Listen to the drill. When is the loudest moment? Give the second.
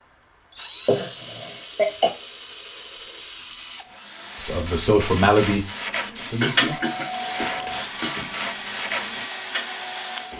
10 s.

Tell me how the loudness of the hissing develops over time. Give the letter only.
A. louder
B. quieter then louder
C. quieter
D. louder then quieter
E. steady
D.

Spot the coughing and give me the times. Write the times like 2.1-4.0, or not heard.
0.8-2.1, 6.4-8.3.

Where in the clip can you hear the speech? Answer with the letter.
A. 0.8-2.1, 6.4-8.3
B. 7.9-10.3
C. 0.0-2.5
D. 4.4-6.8
D.